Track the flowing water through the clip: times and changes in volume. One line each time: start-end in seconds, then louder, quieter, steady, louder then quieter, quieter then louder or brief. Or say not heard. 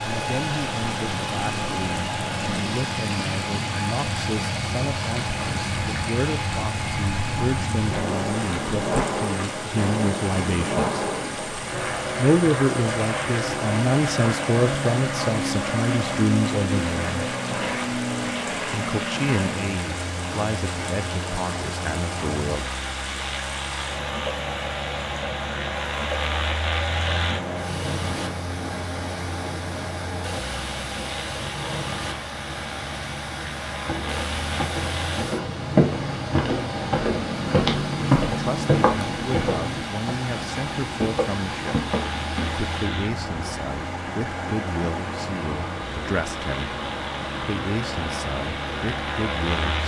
0.0-49.8 steady.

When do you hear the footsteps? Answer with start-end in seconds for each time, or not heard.
33.9-42.5.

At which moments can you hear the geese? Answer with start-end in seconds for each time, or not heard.
not heard.